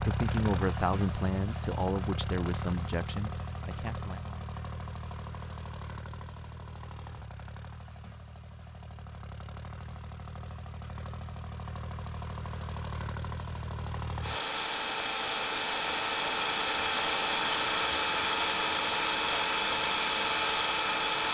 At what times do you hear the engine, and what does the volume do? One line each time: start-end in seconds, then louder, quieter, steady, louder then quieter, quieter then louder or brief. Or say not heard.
0.0-21.2 quieter then louder.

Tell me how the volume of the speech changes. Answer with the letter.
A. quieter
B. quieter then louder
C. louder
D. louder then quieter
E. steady
A.